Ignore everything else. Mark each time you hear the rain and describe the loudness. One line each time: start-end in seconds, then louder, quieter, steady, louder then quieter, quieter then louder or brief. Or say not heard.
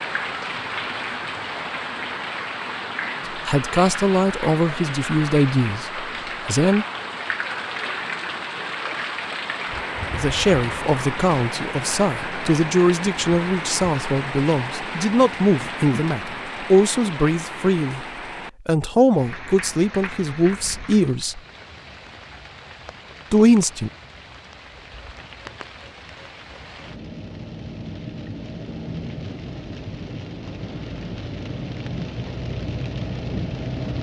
0.0-33.9 quieter then louder.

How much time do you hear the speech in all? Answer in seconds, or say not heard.
15 s.